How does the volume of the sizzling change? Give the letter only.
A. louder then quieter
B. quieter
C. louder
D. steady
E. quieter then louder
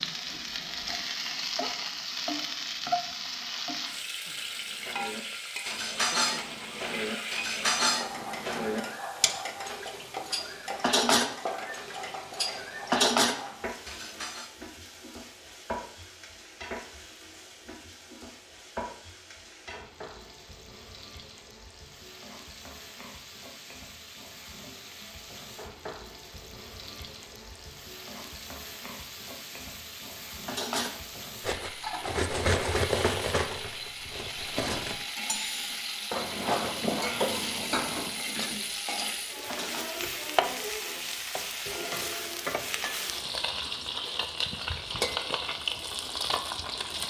E.